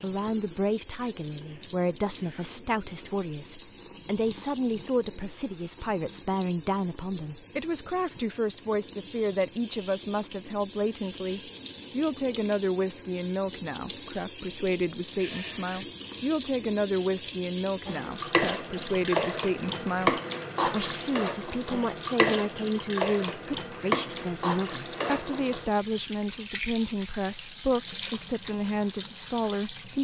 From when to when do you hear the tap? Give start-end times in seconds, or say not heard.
0.0-29.9.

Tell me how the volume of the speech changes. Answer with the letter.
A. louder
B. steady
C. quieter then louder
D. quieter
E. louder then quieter
B.